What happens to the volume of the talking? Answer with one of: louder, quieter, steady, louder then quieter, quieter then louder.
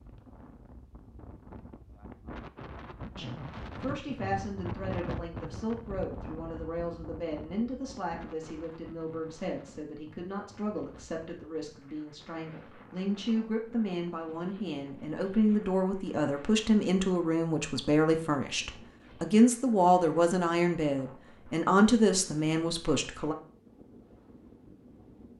louder.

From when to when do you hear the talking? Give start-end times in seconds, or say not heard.
3.1-23.4.